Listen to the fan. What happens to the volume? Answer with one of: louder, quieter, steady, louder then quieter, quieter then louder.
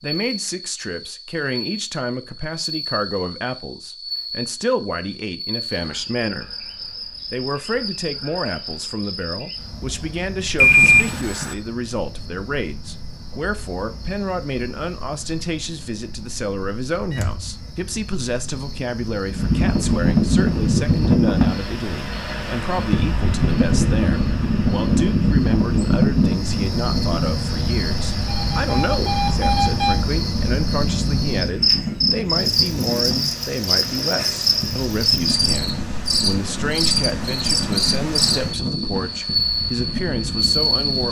quieter.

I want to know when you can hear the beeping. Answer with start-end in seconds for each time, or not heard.
10.6-11.6, 16.9-17.4, 28.2-29.9.